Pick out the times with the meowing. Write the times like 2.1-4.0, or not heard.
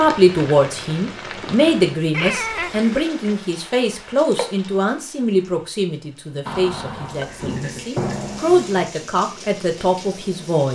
2.1-2.9, 8.0-8.9.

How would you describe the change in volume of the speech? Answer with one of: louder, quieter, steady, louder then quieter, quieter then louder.
quieter then louder.